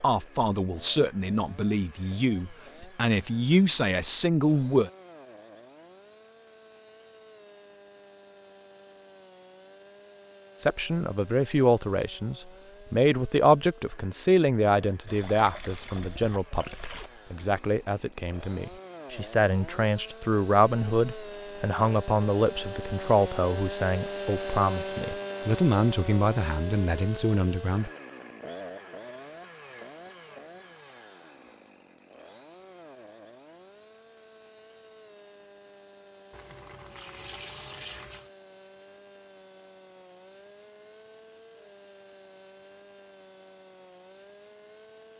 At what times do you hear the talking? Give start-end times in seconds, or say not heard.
0.0-4.9, 10.6-27.9.